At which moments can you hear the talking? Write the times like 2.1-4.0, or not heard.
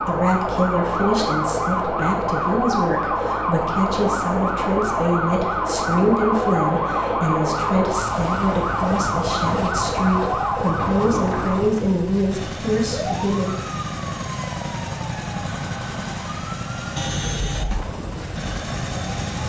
0.1-13.6.